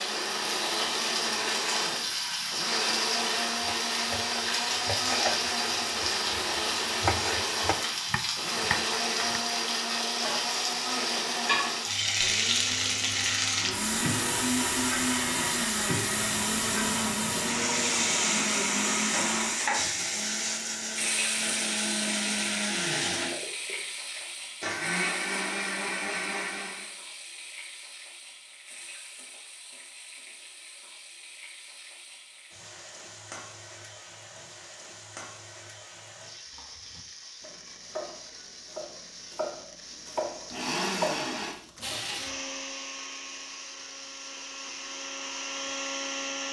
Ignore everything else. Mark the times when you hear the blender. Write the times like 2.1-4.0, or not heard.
0.0-26.9, 40.5-46.4.